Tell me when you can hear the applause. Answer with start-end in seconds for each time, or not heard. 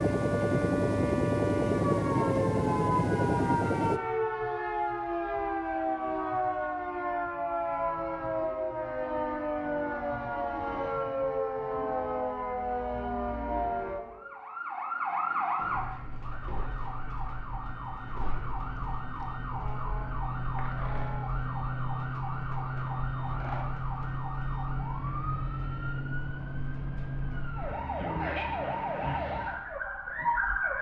not heard.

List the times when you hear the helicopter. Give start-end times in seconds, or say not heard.
0.0-4.0.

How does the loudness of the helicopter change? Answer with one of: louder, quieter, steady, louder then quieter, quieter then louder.
steady.